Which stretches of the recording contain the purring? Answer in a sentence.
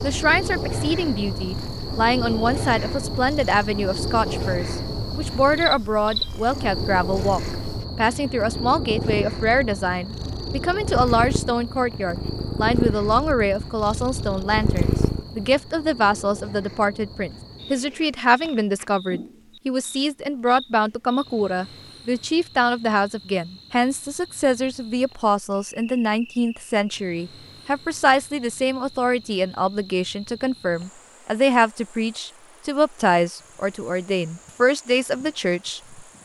The purring can be heard from 0.1 to 15.6 s.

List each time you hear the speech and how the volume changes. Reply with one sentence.
You can hear the speech from 0.0 to 36.0 s, at a steady volume.